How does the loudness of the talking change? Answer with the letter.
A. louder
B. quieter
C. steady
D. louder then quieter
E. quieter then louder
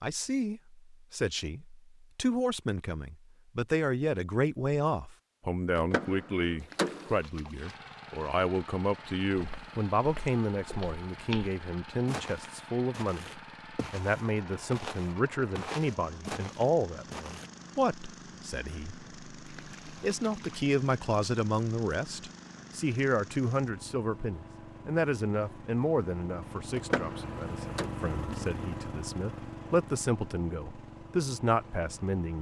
C.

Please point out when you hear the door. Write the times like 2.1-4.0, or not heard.
5.8-7.2, 26.8-27.9.